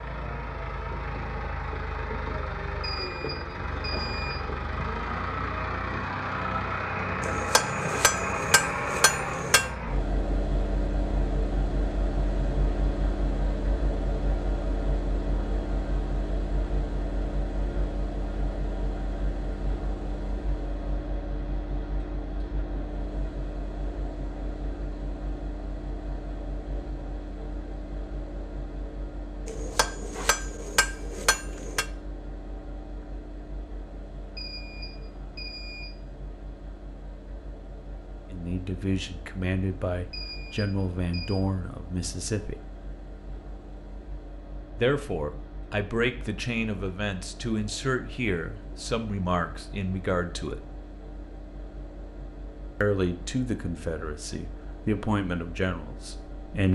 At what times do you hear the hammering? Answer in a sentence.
The hammering can be heard from 7.2 to 9.7 s and from 29.4 to 31.9 s.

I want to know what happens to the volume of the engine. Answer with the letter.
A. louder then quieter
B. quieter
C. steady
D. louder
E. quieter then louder
B.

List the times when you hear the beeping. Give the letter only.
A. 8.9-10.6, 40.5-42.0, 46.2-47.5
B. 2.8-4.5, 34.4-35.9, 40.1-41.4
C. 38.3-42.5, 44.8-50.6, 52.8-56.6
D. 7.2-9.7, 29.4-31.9
B.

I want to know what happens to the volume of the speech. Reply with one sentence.
The volume of the speech stays about the same.